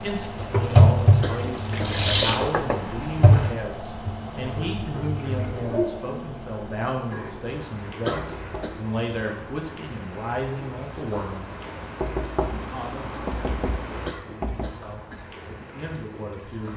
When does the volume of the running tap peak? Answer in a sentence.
The volume of the running tap peaks at 1 second.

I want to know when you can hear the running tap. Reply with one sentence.
You can hear the running tap from 0.1 to 16.7 s.